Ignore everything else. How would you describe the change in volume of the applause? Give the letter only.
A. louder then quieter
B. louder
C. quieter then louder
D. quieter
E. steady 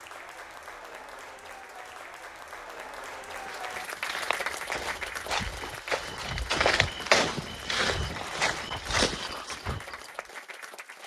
A.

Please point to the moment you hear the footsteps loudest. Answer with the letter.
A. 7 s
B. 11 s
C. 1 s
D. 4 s
A.